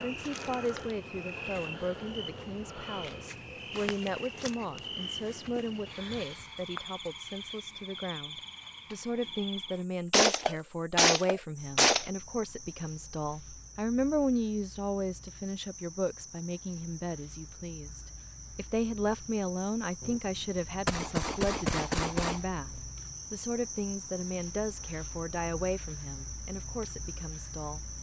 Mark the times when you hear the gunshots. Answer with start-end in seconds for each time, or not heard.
10.1-12.1, 20.0-22.4.